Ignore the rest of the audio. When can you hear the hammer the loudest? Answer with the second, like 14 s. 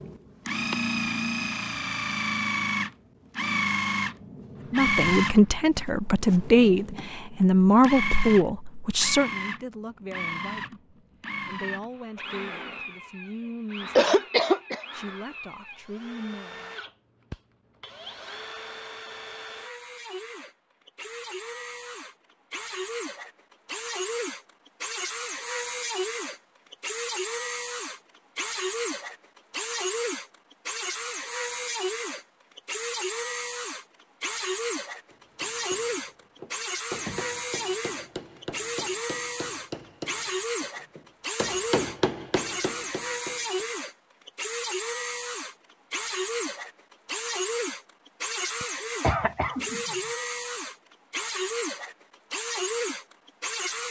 42 s.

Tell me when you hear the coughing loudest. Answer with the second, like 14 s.
14 s.